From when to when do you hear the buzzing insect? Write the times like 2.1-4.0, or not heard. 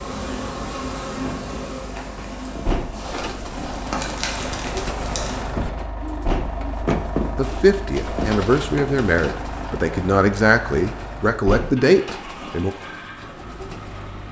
0.0-5.5.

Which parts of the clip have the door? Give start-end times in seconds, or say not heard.
2.1-2.9, 5.8-6.6, 10.9-11.8.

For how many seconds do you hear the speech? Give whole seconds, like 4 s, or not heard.
5 s.